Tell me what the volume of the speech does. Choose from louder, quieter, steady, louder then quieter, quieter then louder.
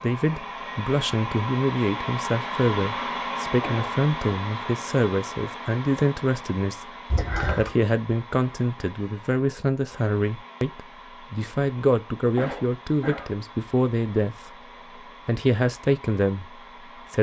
steady.